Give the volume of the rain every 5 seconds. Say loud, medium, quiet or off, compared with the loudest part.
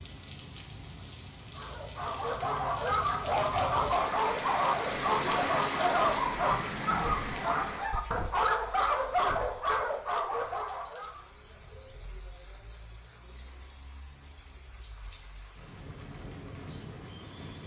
loud, loud, quiet, medium.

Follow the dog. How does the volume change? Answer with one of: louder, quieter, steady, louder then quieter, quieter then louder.
steady.